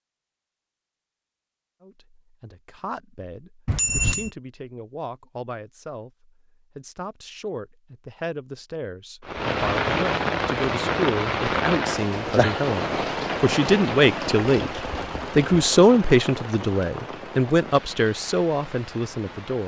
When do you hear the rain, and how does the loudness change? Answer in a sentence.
You can hear the rain from 9.2 to 19.6 s, getting quieter.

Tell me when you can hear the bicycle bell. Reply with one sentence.
You can hear the bicycle bell from 3.6 to 4.3 s.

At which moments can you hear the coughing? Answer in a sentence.
You can't hear the coughing here.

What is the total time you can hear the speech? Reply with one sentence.
The speech can be heard for 17 seconds in total.